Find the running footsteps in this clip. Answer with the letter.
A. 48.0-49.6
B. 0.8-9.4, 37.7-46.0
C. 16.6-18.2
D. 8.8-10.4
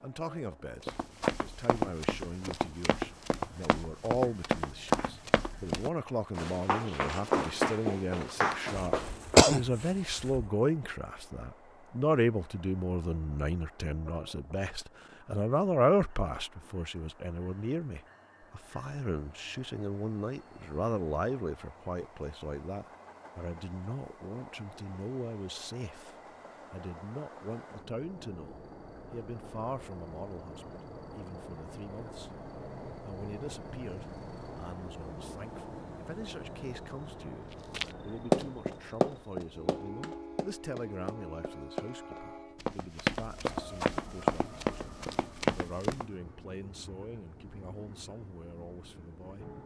B.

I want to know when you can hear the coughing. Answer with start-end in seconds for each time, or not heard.
8.8-10.4.